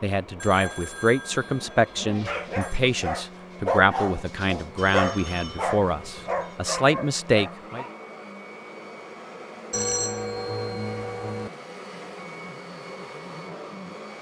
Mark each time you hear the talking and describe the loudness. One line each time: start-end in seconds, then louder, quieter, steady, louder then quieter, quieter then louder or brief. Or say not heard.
0.0-7.8 steady.